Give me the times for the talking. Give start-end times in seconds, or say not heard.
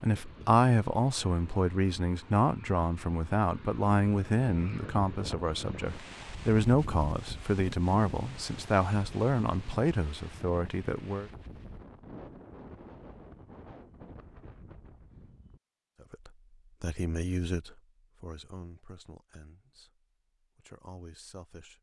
0.0-11.3, 16.0-21.7.